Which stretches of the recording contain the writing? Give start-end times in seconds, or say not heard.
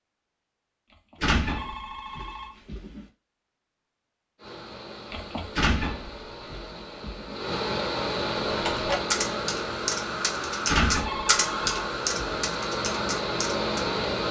not heard.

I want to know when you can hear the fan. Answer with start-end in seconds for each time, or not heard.
4.3-14.2.